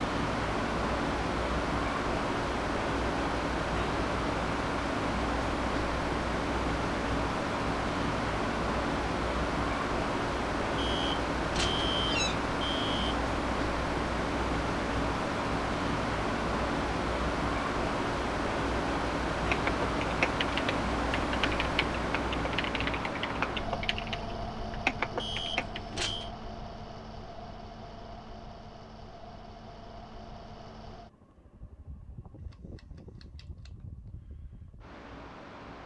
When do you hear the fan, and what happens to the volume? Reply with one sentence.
The fan can be heard from 0.0 to 35.8 s, getting quieter.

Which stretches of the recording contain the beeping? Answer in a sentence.
The beeping can be heard from 10.8 to 13.2 s and from 25.2 to 26.3 s.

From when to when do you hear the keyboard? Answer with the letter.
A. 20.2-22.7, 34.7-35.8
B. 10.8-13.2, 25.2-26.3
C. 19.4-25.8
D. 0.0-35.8
C.